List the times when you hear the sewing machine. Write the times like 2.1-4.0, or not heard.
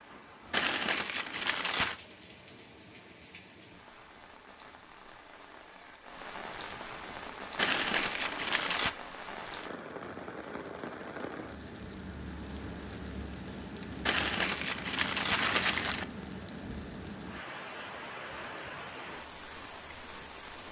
not heard.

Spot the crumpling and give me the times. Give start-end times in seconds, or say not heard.
0.5-1.9, 7.5-8.9, 14.1-16.1.